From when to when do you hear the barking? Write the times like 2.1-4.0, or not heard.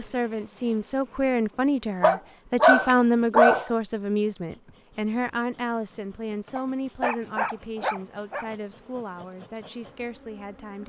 2.0-3.7, 6.5-8.5.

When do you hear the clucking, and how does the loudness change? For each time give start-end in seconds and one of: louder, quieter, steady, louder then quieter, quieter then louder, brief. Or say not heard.
not heard.